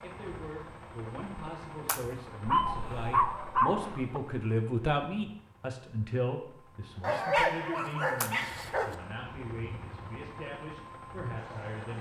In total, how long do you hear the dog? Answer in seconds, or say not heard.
4 s.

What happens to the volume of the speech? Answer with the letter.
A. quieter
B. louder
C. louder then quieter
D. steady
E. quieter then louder
C.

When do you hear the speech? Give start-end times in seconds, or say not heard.
0.0-11.9.